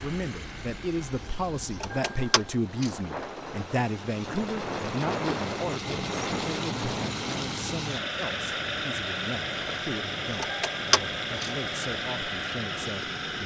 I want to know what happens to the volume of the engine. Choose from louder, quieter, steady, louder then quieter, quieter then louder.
louder.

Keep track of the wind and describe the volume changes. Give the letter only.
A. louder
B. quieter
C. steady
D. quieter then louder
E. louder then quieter
E.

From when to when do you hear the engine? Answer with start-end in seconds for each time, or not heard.
0.0-13.4.